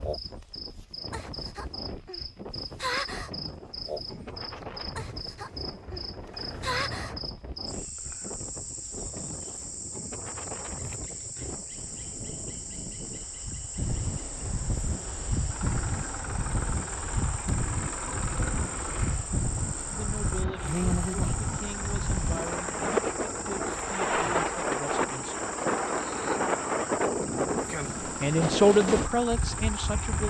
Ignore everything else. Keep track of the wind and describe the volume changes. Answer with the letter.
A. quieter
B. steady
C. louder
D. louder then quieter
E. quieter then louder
C.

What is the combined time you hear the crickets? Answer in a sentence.
You can hear the crickets for 30 seconds altogether.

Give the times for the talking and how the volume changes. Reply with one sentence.
You can hear the talking from 19.9 to 25.5 s, at a steady volume; and briefly from 28.0 to 30.2 s.